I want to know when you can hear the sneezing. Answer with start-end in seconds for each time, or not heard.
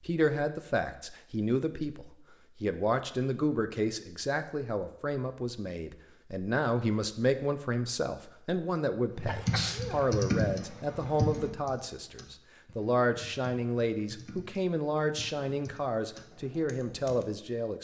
9.2-10.1.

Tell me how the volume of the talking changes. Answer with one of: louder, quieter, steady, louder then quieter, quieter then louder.
steady.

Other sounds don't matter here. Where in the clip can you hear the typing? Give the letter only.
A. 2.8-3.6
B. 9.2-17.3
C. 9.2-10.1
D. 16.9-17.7
B.